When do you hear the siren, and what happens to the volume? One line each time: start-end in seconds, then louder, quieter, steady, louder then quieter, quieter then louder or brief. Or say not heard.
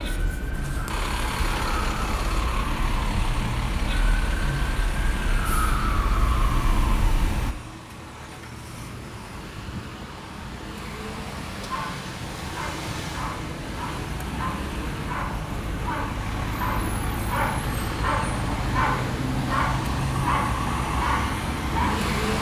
0.0-7.5 louder.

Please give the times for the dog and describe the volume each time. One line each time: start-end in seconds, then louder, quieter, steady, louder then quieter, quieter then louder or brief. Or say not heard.
11.7-22.0 louder.